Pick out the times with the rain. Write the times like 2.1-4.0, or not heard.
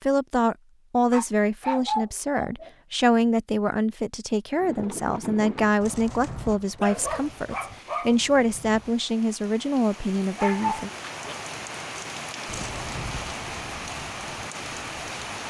6.9-15.4.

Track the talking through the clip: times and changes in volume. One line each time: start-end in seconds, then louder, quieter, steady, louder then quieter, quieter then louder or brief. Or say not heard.
0.0-10.9 steady.